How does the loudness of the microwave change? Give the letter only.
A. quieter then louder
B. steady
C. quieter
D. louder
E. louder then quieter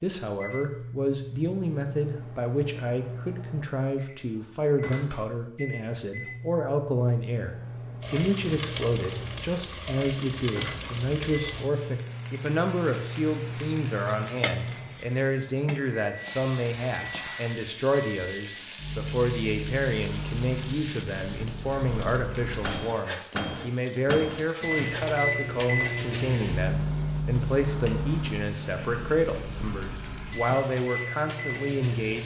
D.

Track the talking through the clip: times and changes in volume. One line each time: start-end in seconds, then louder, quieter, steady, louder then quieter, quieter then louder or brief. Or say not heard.
0.0-32.2 steady.